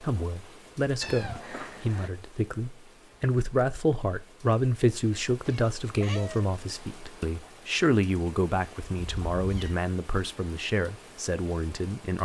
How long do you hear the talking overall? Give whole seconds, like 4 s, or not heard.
12 s.